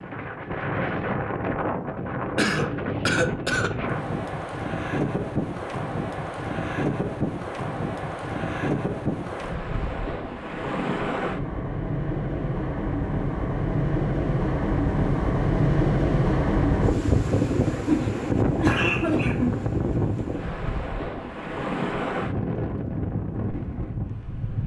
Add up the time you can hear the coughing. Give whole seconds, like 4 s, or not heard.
3 s.